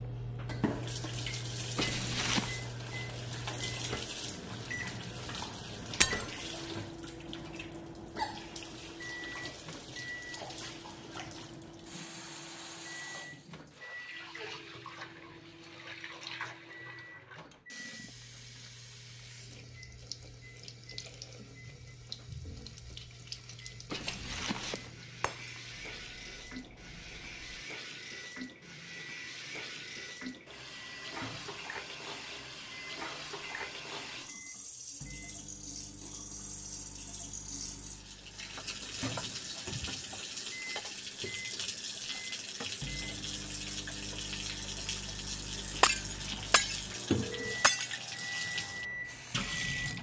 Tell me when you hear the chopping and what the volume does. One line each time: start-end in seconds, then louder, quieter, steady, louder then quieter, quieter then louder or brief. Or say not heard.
not heard.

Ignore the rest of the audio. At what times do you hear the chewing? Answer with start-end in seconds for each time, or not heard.
not heard.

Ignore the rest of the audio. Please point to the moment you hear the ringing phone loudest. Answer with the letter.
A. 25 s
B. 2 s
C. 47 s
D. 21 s
B.